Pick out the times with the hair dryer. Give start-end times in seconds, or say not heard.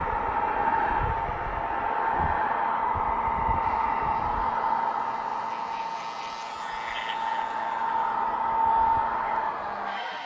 0.0-10.2.